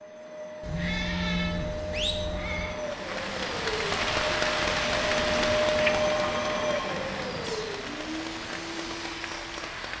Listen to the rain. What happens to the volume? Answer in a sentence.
The loudness of the rain goes down.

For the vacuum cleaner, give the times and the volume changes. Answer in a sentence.
The vacuum cleaner can be heard from 0.0 to 9.9 s, getting louder then quieter.